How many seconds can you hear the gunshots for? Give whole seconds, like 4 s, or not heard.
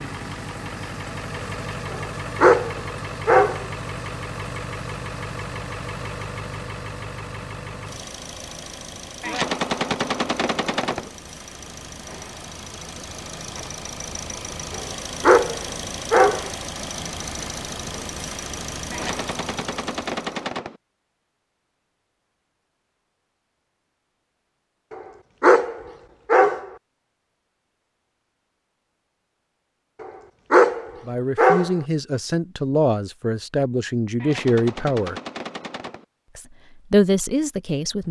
6 s.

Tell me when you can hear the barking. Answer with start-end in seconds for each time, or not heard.
1.9-3.6, 14.8-16.5, 24.9-26.6, 30.0-31.8.